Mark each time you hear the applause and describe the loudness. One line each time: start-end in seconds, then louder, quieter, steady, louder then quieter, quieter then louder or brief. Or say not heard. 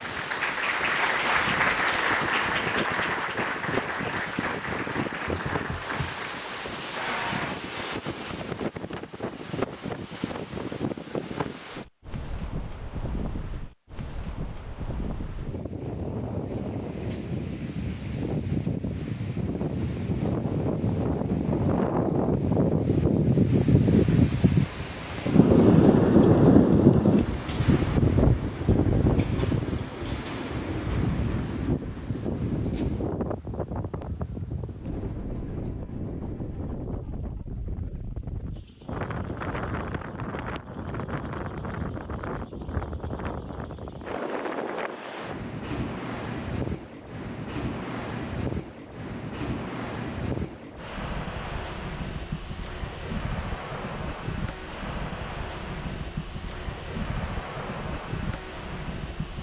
0.0-7.6 quieter.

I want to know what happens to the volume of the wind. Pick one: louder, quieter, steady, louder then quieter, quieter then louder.
louder then quieter.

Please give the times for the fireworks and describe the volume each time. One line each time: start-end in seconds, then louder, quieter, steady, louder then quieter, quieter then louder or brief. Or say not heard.
not heard.